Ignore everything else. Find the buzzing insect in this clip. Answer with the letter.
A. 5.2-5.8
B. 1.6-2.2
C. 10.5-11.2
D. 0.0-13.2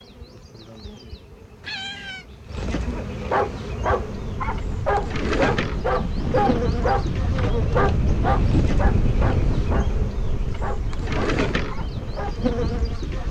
D.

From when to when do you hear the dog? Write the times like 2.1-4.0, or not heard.
2.7-12.3.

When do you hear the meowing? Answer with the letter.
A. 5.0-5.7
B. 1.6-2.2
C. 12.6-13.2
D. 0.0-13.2
B.